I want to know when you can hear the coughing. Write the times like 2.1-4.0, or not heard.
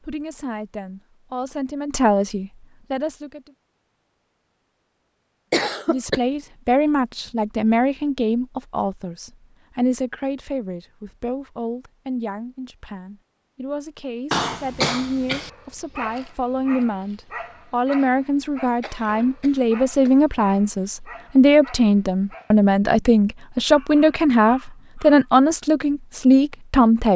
5.5-6.2, 14.3-15.5, 18.6-20.2.